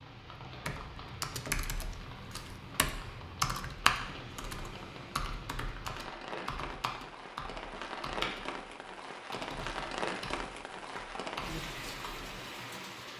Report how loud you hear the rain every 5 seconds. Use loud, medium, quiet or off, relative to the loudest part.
medium, loud, loud.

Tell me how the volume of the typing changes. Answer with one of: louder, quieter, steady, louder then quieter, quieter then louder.
quieter.